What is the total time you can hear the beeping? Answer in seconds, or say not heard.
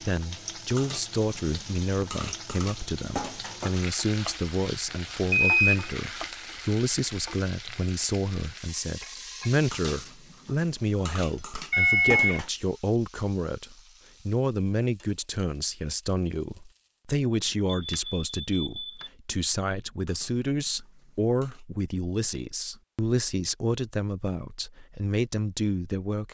3 s.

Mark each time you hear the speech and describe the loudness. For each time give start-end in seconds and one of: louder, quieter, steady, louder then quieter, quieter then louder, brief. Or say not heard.
0.0-26.2 steady.